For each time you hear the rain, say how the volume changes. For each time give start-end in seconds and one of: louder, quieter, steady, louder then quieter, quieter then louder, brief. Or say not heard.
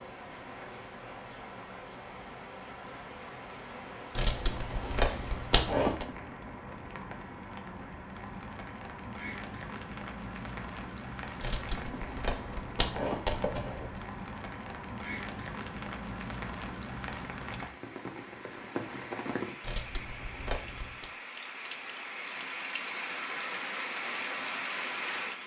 0.0-25.4 louder.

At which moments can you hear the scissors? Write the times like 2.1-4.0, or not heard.
4.2-6.0, 11.4-14.1, 19.6-21.1.